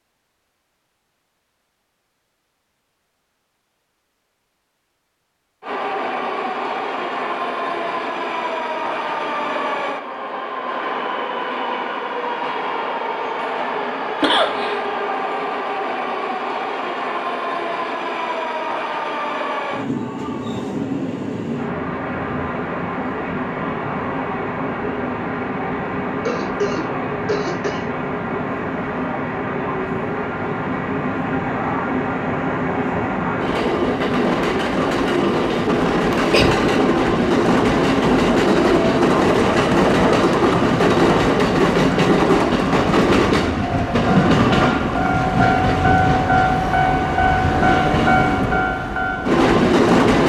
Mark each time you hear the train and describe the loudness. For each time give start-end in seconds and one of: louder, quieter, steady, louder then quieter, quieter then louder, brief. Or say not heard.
5.6-50.2 louder.